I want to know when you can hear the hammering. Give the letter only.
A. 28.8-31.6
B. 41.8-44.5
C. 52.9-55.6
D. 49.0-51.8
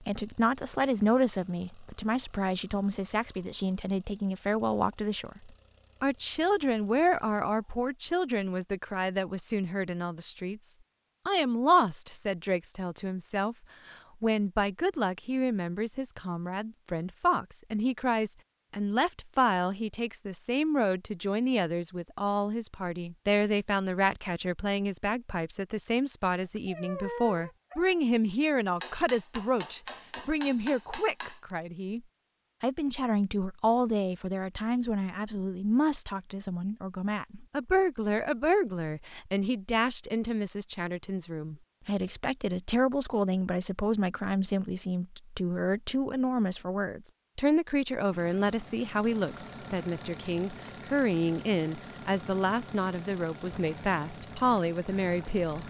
A.